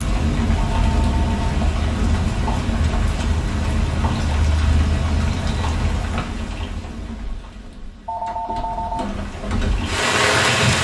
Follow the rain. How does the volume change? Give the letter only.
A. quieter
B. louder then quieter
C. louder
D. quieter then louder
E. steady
D.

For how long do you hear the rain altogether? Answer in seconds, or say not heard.
11 s.